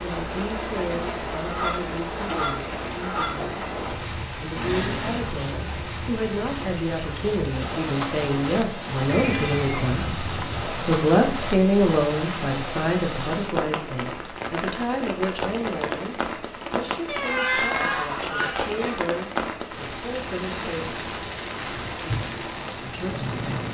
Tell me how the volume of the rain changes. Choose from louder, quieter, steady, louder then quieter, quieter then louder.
steady.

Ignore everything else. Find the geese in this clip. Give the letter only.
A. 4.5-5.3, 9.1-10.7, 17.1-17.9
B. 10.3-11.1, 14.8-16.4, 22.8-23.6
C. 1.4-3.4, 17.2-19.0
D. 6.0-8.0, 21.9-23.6
C.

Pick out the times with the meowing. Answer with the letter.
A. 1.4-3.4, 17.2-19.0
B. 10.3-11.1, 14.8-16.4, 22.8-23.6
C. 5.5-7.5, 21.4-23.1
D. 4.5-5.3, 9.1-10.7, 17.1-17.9
D.